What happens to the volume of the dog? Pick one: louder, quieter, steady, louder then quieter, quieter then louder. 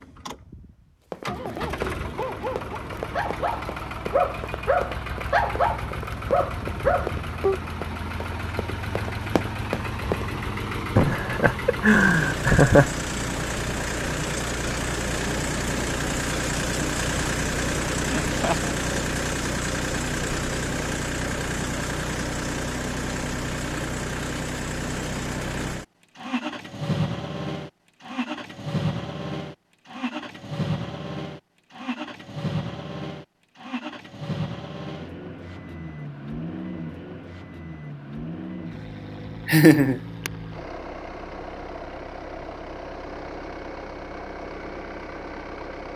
louder.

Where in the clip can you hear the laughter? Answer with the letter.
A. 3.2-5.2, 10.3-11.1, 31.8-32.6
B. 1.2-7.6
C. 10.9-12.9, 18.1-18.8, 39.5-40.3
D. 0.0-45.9
C.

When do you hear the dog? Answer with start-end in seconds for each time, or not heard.
1.2-7.6.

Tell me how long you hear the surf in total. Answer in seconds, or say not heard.
not heard.